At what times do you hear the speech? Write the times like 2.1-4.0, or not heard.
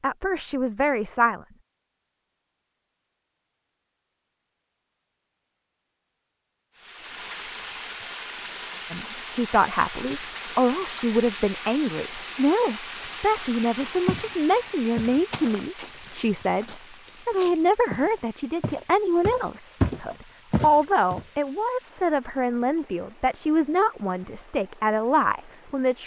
0.0-1.4, 8.9-26.0.